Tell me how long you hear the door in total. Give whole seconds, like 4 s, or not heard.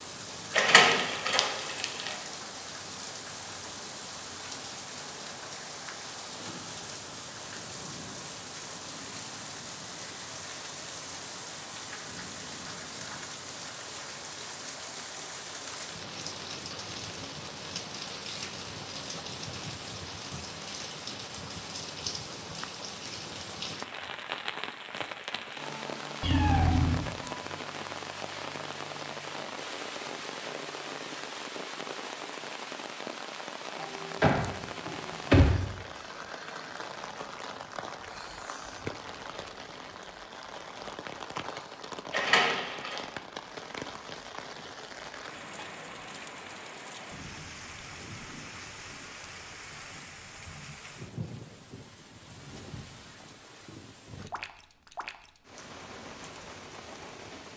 4 s.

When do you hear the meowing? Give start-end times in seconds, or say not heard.
26.2-27.1.